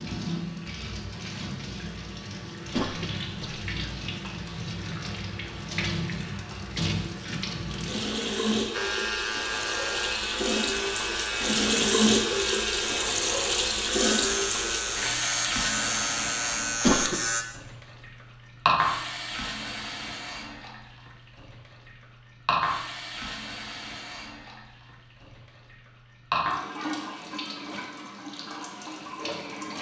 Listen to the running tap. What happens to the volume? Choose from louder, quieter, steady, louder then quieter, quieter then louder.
louder then quieter.